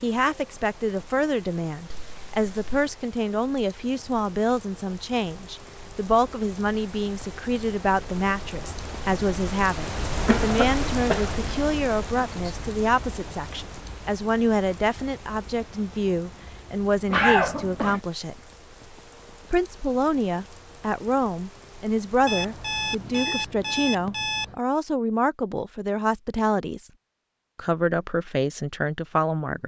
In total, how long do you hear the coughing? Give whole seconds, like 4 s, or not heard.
2 s.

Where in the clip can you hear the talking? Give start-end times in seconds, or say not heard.
0.0-18.4, 19.5-26.9, 27.6-29.6.